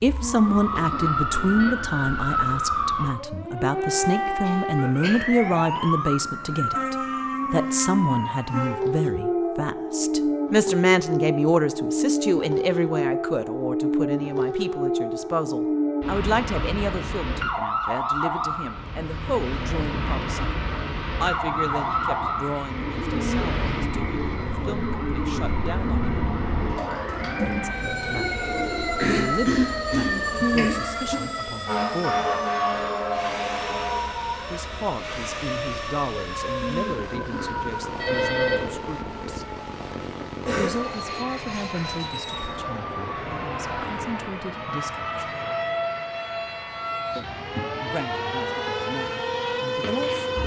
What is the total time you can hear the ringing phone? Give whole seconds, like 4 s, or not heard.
4 s.